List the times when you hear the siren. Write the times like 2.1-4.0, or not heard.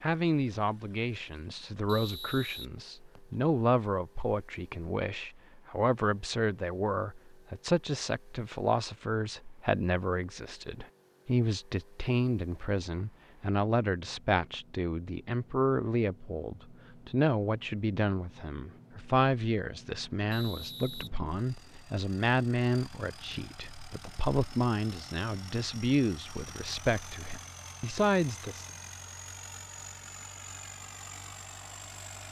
not heard.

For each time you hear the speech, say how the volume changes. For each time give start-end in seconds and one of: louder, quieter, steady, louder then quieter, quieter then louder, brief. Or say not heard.
0.0-28.6 steady.